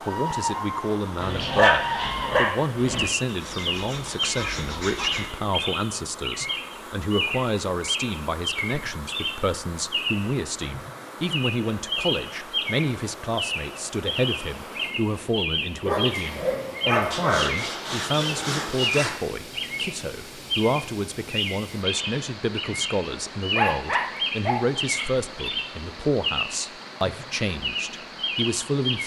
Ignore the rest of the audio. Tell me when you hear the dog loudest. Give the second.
2 s.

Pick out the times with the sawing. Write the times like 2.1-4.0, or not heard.
3.2-5.3, 17.1-19.1.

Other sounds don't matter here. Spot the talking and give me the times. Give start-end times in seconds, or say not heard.
0.0-29.0.